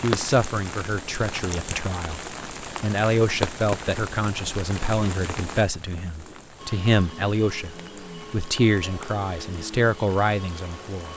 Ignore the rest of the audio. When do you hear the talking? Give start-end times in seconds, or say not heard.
0.0-2.2, 2.8-11.1.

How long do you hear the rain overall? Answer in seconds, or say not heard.
11 s.